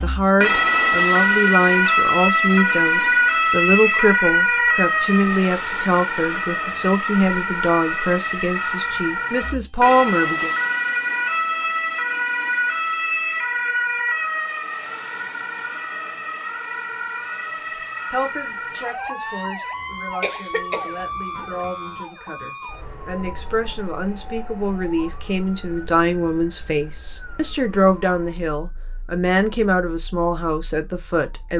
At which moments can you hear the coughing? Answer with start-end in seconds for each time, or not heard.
20.2-20.9.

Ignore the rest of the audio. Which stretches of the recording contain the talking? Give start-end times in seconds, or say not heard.
0.0-10.6, 17.6-31.5.